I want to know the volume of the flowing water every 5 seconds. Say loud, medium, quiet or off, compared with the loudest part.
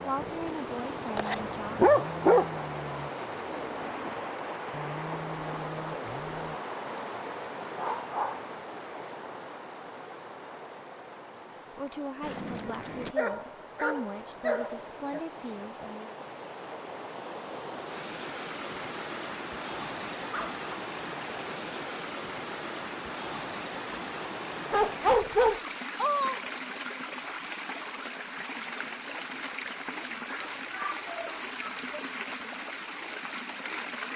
loud, loud, medium, loud, loud, loud, loud.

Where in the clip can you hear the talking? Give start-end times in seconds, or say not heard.
0.0-1.9, 11.7-16.1.